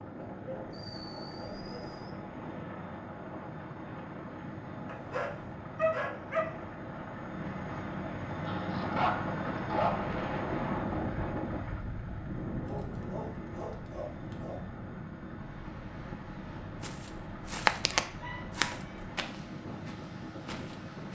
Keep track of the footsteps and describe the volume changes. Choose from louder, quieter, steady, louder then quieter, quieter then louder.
quieter then louder.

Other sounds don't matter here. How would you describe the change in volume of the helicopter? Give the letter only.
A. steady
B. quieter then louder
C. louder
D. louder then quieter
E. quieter
D.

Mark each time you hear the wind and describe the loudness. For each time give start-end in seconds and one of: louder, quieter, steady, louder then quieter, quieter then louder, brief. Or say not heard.
0.0-21.1 louder then quieter.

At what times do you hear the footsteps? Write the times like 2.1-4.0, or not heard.
16.8-21.1.